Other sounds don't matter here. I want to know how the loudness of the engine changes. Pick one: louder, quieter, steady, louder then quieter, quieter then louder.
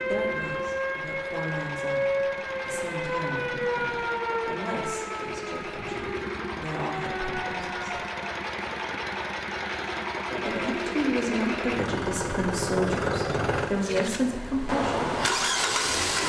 louder.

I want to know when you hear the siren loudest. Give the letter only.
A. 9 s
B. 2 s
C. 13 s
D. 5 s
B.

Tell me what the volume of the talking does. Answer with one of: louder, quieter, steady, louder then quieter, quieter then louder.
louder.